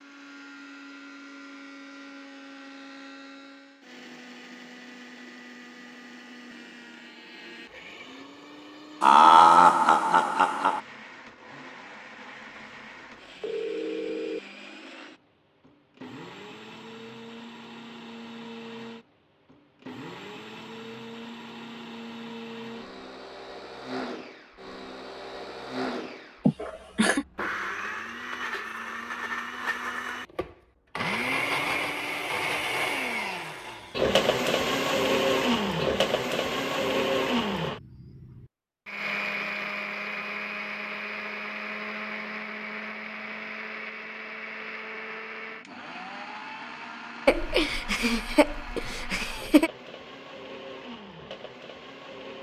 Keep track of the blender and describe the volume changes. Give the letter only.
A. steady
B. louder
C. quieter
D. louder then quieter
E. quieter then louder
D.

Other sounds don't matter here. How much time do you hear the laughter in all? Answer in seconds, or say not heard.
5 s.